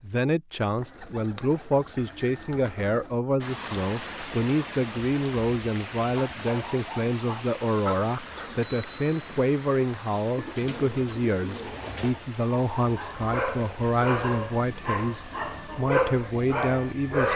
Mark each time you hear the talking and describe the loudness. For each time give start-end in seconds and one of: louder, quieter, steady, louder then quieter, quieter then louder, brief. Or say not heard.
0.0-17.3 steady.